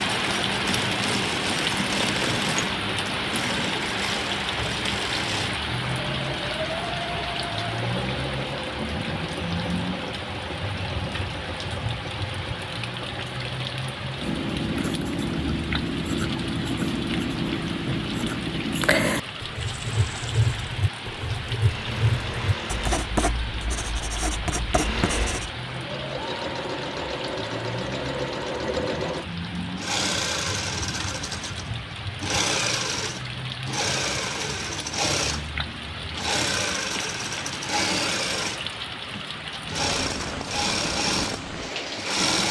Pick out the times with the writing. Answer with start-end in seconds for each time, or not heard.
14.2-25.5.